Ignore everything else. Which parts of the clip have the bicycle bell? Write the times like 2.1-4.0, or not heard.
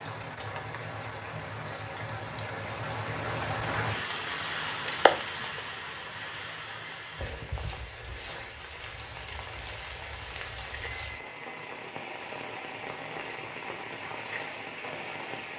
10.7-11.8.